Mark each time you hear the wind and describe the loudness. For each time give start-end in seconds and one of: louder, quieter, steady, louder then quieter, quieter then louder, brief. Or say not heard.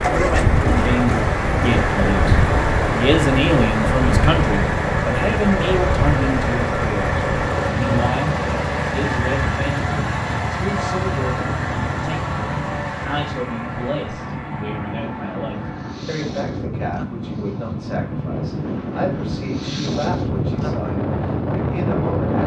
0.0-22.4 quieter then louder.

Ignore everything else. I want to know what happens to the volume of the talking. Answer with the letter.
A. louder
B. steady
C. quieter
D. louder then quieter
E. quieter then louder
C.